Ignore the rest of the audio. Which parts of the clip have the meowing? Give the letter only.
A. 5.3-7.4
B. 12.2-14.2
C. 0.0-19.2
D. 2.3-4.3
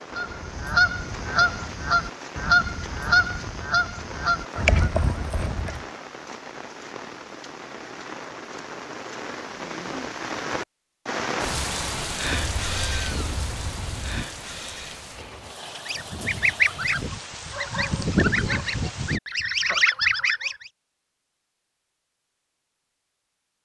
B.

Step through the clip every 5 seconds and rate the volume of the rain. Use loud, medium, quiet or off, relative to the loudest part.
medium, medium, loud, medium, off.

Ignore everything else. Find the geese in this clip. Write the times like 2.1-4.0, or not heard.
0.1-5.8, 15.8-20.7.